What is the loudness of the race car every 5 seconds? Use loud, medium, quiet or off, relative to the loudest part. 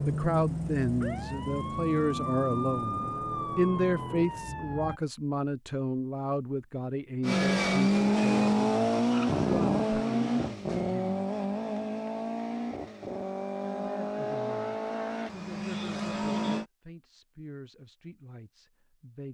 off, loud, medium, medium.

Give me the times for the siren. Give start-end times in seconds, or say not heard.
0.0-5.0.